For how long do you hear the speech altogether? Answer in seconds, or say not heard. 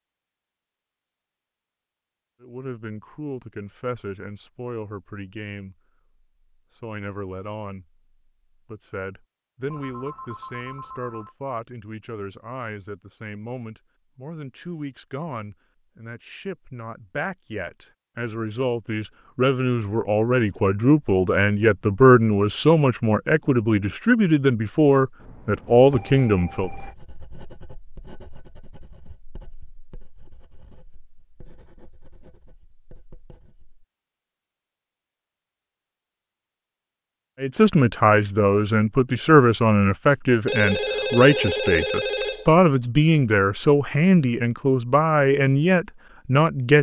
32 s.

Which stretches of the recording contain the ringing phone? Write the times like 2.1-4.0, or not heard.
9.7-11.3, 25.1-26.9, 40.5-42.5.